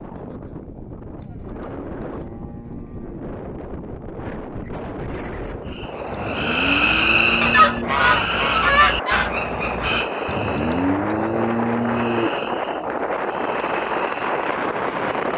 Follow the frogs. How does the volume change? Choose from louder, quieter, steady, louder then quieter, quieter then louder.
quieter.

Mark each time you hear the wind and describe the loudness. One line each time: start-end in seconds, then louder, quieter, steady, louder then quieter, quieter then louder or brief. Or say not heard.
0.0-15.3 louder.